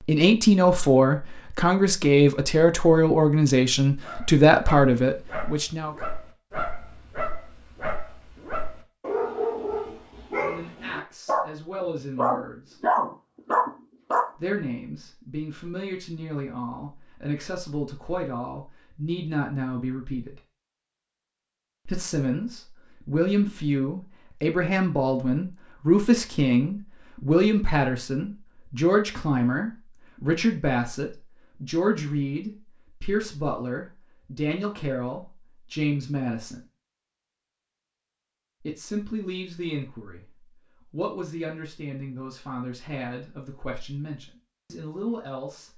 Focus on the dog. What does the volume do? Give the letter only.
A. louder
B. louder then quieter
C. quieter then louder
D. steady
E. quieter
A.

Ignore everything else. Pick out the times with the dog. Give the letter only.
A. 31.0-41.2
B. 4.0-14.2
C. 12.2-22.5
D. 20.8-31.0
B.